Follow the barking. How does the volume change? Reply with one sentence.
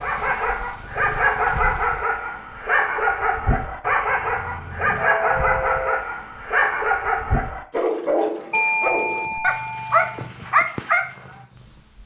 The loudness of the barking stays about the same.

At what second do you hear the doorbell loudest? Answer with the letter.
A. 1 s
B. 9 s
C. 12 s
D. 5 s
B.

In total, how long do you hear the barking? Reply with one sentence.
You can hear the barking for 11 seconds altogether.